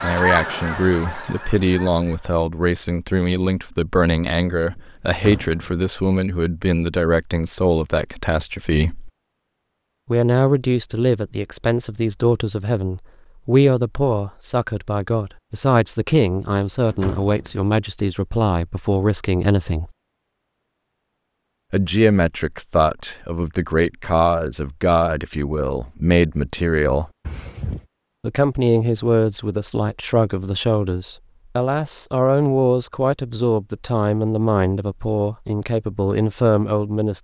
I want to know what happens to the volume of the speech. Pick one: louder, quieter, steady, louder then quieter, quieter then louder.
steady.